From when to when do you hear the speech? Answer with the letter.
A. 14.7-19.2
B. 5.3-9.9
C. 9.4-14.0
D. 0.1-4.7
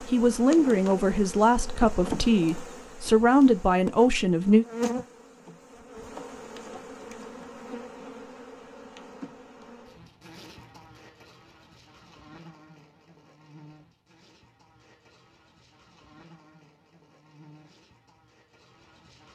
D.